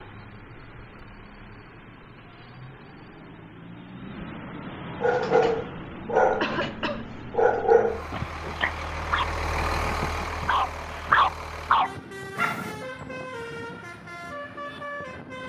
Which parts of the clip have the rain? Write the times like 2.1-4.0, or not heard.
not heard.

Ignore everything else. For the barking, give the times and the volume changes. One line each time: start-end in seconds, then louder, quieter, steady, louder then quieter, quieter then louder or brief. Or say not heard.
5.0-12.8 quieter then louder.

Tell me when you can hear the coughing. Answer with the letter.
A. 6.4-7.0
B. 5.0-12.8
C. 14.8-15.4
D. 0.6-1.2
A.